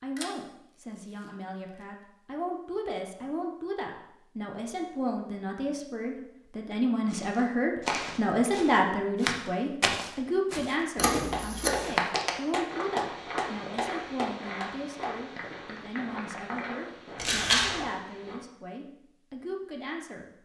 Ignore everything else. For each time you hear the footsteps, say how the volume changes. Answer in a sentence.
The footsteps can be heard from 7.0 to 18.4 s, getting quieter.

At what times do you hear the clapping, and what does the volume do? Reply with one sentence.
The clapping can be heard from 10.8 to 16.8 s, getting quieter.